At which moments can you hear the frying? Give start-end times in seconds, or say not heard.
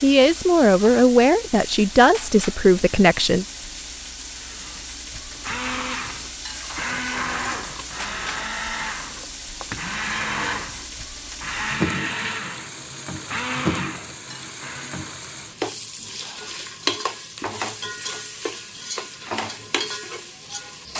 0.0-20.9.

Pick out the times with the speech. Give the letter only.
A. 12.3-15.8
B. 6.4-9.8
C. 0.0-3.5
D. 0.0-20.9
C.